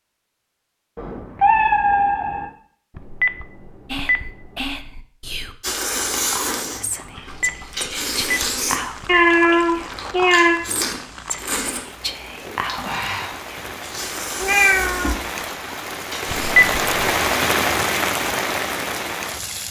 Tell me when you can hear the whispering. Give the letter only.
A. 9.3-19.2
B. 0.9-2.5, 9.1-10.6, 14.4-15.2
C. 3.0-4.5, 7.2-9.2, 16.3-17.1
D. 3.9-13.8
D.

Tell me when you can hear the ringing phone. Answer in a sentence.
The ringing phone can be heard from 3.0 to 4.5 s, from 7.2 to 9.2 s and from 16.3 to 17.1 s.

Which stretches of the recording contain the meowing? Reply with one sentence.
The meowing can be heard from 0.9 to 2.5 s, from 9.1 to 10.6 s and from 14.4 to 15.2 s.